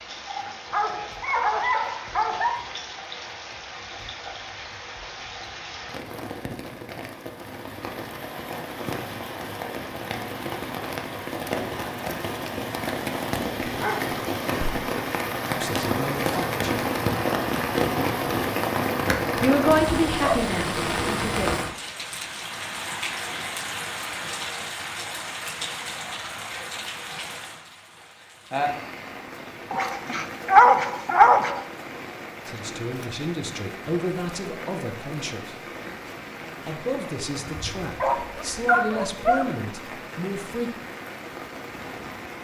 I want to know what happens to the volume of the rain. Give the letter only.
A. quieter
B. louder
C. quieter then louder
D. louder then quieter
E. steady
D.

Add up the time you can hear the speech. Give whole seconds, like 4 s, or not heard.
11 s.